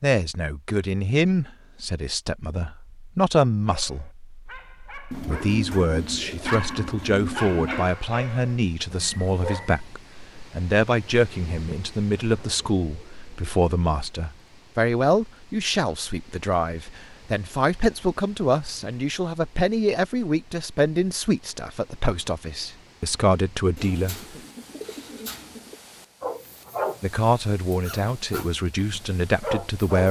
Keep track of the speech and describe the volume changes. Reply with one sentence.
The loudness of the speech stays about the same.